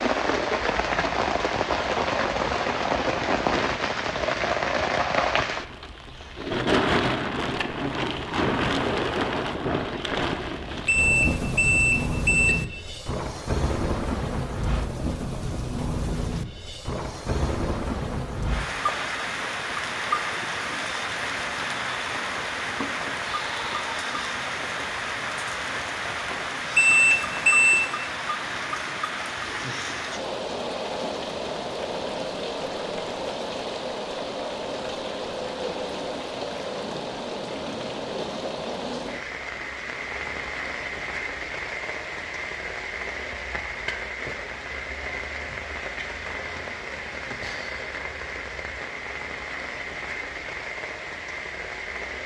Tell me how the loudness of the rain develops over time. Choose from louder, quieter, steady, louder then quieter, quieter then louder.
quieter.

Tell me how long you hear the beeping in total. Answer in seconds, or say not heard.
3 s.